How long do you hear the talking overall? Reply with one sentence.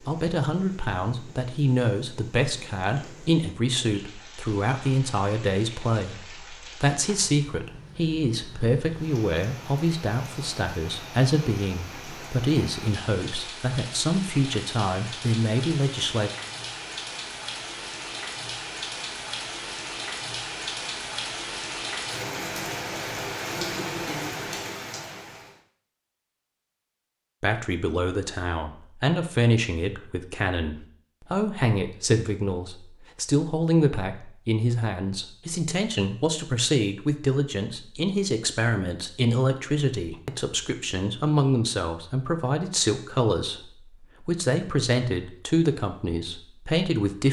You can hear the talking for 36 seconds altogether.